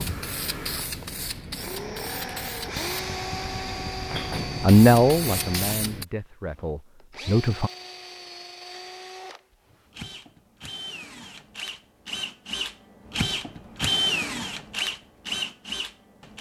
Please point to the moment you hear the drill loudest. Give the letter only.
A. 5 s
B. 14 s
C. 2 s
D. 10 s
B.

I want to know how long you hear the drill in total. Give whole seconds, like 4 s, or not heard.
16 s.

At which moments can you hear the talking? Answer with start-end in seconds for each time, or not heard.
4.6-7.7.